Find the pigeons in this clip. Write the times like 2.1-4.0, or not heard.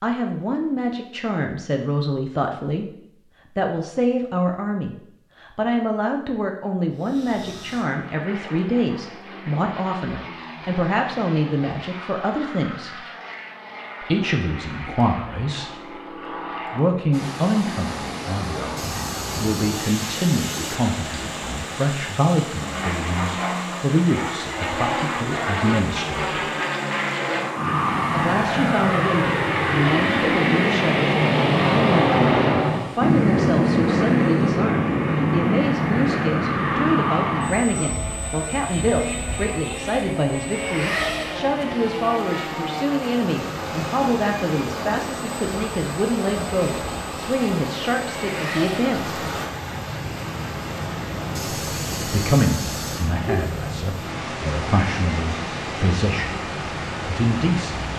18.8-20.8, 51.4-53.1.